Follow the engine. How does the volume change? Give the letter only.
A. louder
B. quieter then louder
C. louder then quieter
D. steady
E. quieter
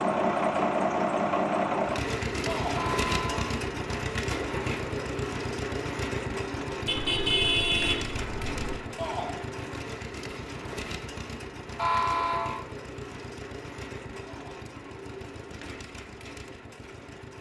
E.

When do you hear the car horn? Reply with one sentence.
You can hear the car horn from 2.7 to 3.5 s, from 6.8 to 8.8 s and from 11.8 to 12.6 s.